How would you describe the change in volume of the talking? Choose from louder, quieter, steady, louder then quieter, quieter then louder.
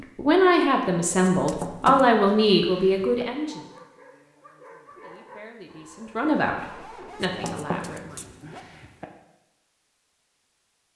quieter.